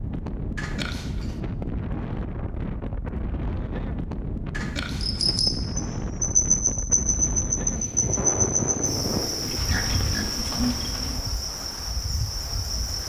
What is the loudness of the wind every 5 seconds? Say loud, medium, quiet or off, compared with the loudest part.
loud, loud, medium.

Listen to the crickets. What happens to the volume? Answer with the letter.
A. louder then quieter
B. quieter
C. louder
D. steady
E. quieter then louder
B.